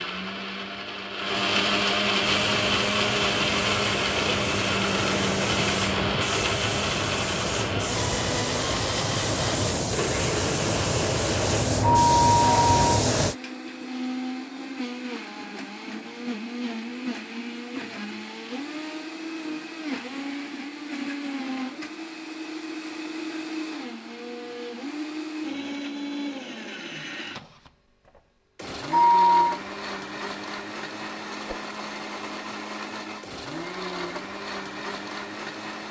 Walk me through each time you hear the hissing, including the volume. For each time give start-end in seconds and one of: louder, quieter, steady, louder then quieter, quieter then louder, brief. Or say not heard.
2.1-13.3 louder.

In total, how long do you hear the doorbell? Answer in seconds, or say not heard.
2 s.